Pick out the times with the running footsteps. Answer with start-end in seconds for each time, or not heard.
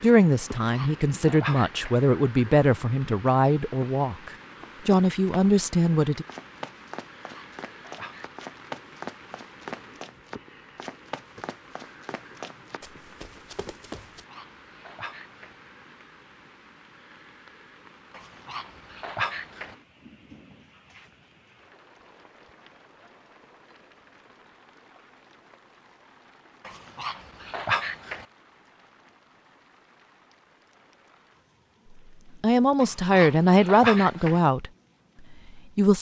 4.5-14.2.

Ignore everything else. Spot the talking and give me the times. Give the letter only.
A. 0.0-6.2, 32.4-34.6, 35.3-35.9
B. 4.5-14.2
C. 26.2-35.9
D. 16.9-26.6
A.